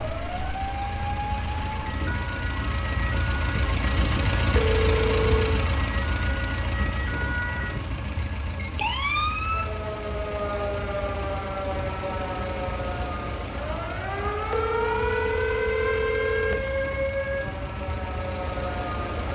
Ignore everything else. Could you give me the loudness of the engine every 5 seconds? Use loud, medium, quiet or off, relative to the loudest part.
loud, loud, medium, medium.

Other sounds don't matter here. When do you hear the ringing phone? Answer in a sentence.
The ringing phone can be heard from 4.5 to 5.6 s and from 14.5 to 16.6 s.